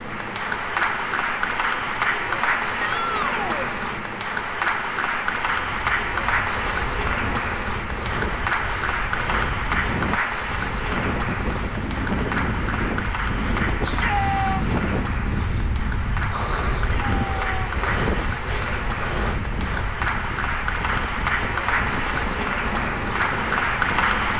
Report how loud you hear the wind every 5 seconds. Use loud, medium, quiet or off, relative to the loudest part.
off, medium, loud, loud, medium.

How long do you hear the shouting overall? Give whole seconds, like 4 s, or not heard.
3 s.